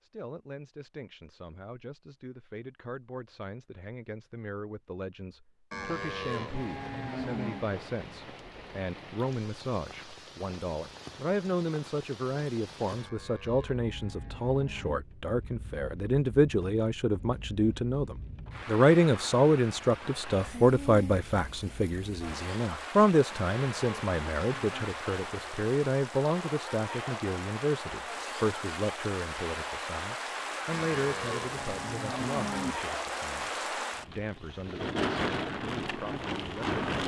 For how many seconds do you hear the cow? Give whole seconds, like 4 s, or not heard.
8 s.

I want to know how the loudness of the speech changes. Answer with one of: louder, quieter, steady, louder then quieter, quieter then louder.
louder then quieter.